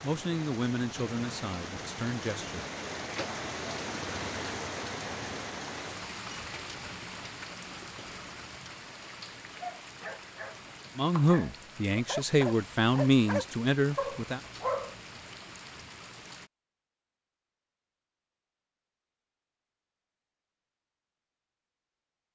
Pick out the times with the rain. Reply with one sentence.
You can hear the rain from 0.0 to 16.5 s.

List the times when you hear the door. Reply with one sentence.
The door can be heard from 3.0 to 3.5 s.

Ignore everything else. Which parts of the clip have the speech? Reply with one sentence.
The speech can be heard from 0.0 to 2.6 s and from 10.9 to 14.4 s.